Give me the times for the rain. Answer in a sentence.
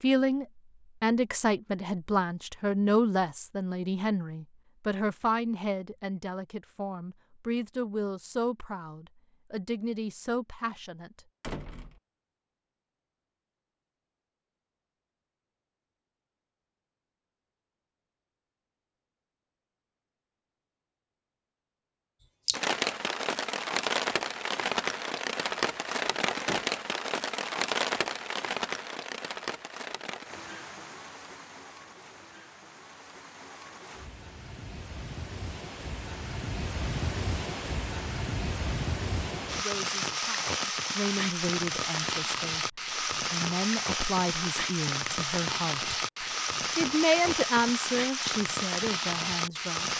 The rain can be heard from 22.4 to 49.9 s.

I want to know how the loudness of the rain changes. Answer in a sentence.
The loudness of the rain goes down, then up.